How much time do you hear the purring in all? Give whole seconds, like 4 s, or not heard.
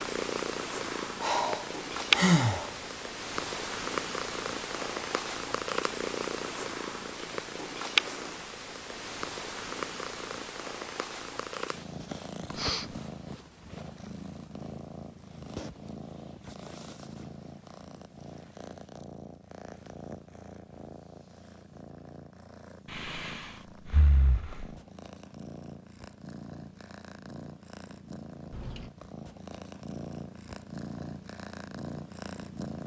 33 s.